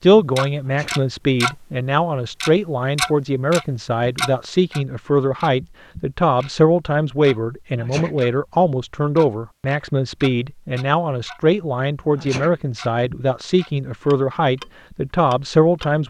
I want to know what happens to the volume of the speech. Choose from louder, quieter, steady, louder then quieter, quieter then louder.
steady.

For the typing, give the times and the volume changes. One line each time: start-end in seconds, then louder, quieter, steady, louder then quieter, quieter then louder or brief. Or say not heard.
not heard.